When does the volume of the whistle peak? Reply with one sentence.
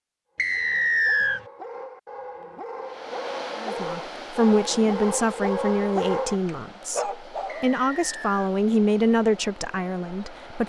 The volume of the whistle peaks at 1 second.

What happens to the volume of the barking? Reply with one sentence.
The volume of the barking goes up.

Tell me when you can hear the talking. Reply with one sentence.
The talking can be heard from 3.6 to 10.6 s.